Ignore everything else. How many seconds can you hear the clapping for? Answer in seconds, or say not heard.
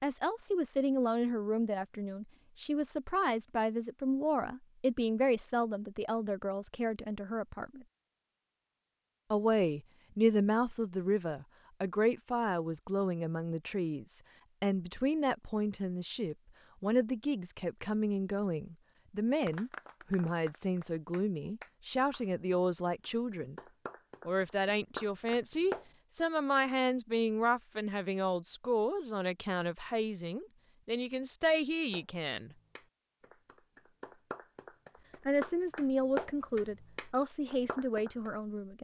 13 s.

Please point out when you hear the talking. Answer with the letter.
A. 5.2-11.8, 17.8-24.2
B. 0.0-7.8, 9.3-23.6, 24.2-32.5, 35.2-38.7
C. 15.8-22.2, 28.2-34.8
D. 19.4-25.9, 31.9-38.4
B.